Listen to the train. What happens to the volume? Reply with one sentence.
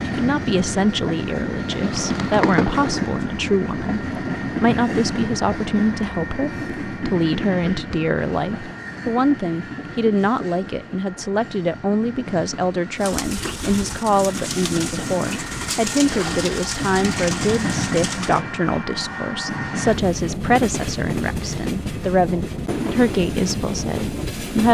The loudness of the train goes down, then up.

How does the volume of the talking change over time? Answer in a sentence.
The loudness of the talking stays about the same.